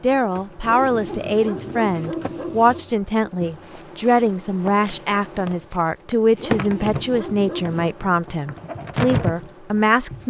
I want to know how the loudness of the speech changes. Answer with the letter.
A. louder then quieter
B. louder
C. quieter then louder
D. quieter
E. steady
E.